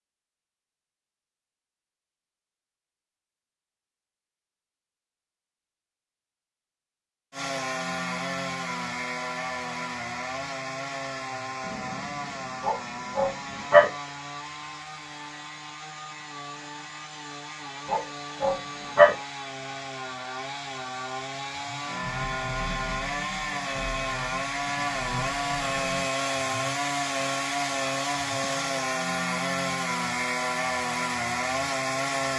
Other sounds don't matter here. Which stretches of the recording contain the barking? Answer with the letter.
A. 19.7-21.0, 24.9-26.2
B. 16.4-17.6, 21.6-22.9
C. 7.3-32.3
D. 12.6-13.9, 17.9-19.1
D.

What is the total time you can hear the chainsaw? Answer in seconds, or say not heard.
25 s.